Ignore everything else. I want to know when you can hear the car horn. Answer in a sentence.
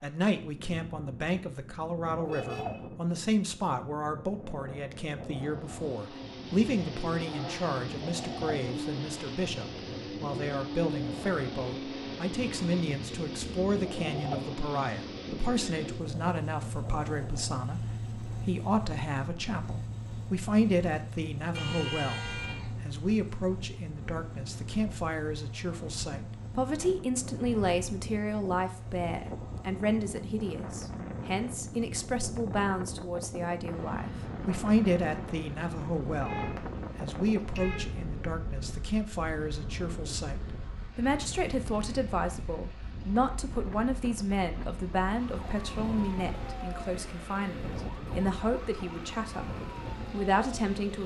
The car horn can be heard from 2.2 to 2.9 s, from 21.6 to 22.7 s and from 36.2 to 38.0 s.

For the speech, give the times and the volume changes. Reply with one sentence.
The speech can be heard from 0.0 to 49.5 s, at a steady volume; and briefly from 50.1 to 51.0 s.